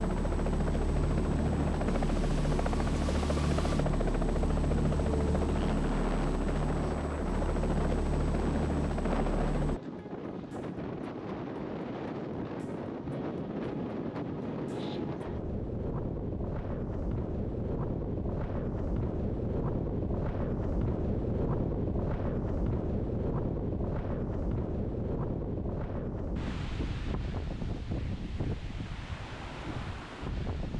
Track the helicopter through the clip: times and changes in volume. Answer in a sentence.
The helicopter can be heard from 0.0 to 9.8 s, at a steady volume.